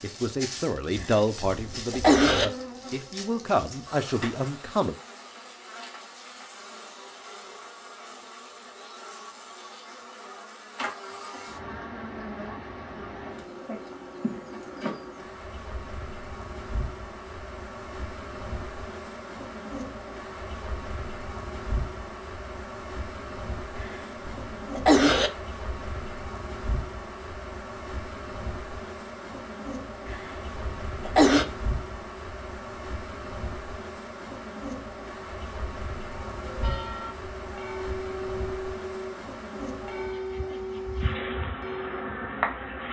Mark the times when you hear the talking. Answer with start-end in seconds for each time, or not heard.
0.0-5.0.